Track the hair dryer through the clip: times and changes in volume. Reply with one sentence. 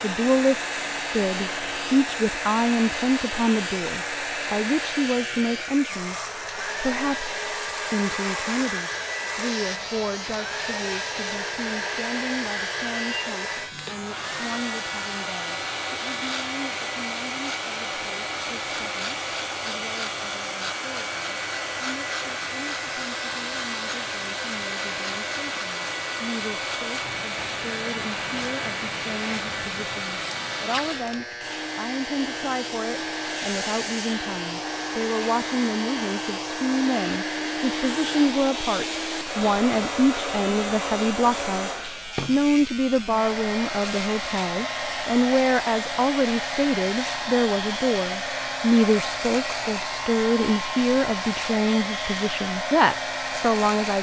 You can hear the hair dryer from 0.0 to 53.9 s, at a steady volume.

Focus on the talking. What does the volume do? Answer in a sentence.
The loudness of the talking goes down, then up.